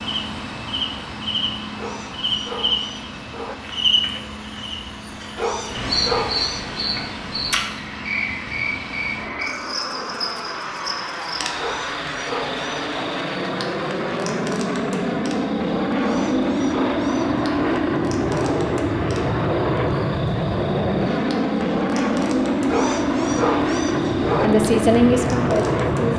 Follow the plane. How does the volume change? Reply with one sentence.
The volume of the plane goes up.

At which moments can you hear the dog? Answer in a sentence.
The dog can be heard from 1.8 to 3.5 s, from 5.3 to 6.8 s, from 11.6 to 12.8 s, from 16.0 to 17.8 s and from 22.6 to 24.5 s.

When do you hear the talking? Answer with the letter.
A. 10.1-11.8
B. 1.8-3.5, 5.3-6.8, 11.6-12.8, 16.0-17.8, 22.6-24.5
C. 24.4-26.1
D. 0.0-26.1
C.